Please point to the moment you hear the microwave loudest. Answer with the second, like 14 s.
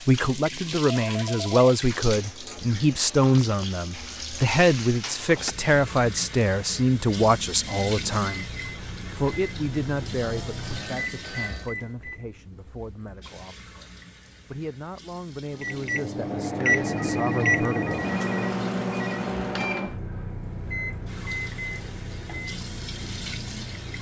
17 s.